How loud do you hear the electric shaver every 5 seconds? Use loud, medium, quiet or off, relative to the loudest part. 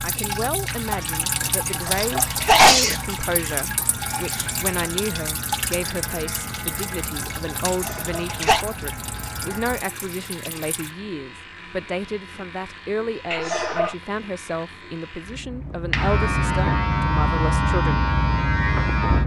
quiet, quiet, quiet, loud.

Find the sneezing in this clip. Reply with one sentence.
You can hear the sneezing from 1.6 to 3.5 s, from 7.7 to 8.7 s and from 13.3 to 13.9 s.